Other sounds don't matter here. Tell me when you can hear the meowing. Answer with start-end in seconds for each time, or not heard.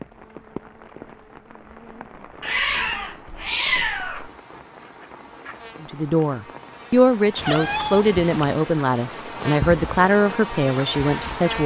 2.4-4.3, 7.3-8.6.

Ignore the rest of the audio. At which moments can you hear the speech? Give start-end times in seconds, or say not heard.
5.8-11.6.